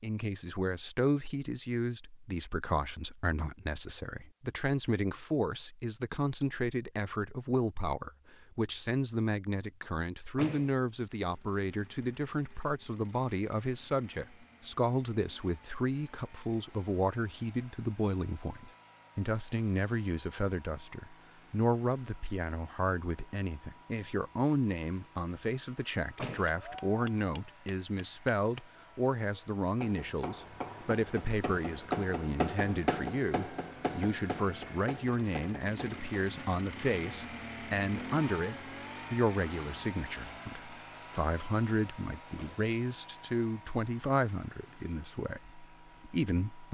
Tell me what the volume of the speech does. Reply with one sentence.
The loudness of the speech stays about the same.